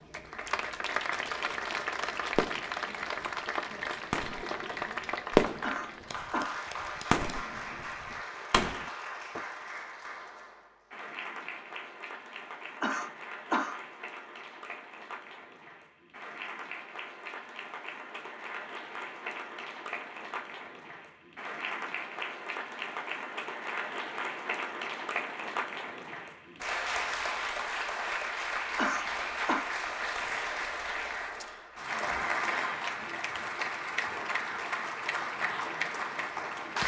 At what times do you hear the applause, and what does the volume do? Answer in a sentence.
You can hear the applause from 0.0 to 36.8 s, getting quieter then louder.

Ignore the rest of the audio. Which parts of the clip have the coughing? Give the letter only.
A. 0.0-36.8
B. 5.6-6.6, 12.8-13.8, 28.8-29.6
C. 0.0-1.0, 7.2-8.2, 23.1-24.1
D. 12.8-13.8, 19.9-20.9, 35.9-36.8
B.